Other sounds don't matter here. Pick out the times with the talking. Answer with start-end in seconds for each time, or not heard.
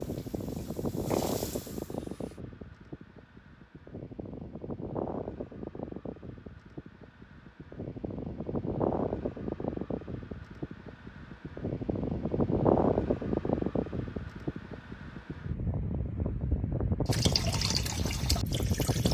not heard.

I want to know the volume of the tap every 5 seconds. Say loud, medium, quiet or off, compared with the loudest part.
quiet, off, off, loud.